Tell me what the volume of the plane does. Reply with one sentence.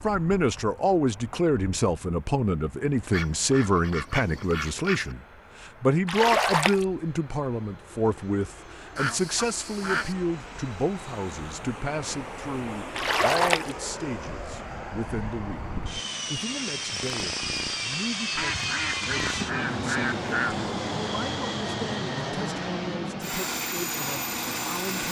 The volume of the plane goes up.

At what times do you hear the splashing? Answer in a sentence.
You can hear the splashing from 6.0 to 6.8 s and from 12.9 to 13.8 s.